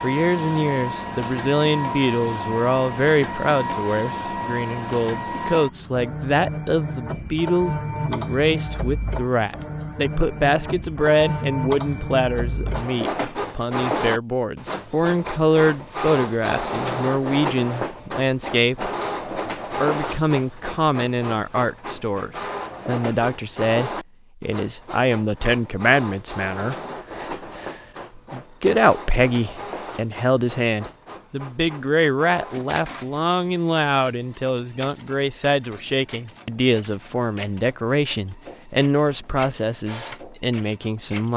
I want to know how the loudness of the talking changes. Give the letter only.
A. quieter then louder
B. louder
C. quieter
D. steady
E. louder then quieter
D.